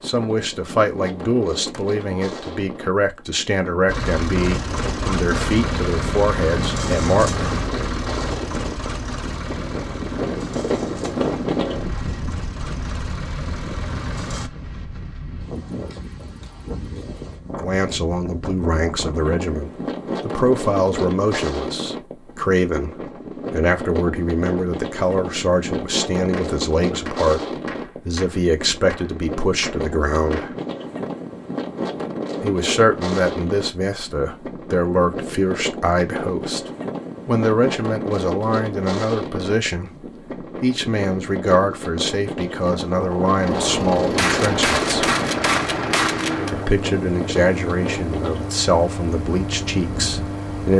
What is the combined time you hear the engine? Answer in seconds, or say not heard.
18 s.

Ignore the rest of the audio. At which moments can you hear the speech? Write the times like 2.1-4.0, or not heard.
0.0-7.5, 17.6-30.6, 32.4-36.6, 37.2-45.1, 46.5-50.7.